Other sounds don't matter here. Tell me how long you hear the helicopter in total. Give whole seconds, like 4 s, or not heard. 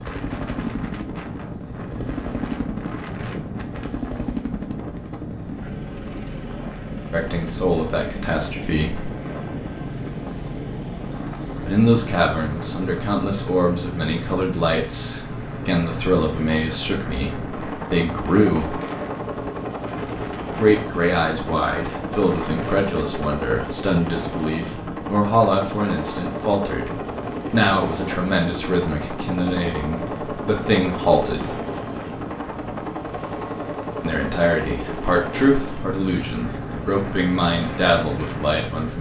39 s.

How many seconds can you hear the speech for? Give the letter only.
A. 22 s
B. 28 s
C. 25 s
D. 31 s
C.